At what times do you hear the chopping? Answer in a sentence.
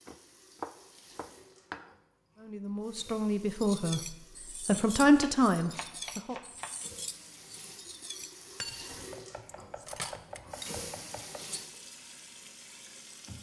You can hear the chopping from 0.1 to 1.9 s, from 5.2 to 6.8 s and from 9.1 to 11.4 s.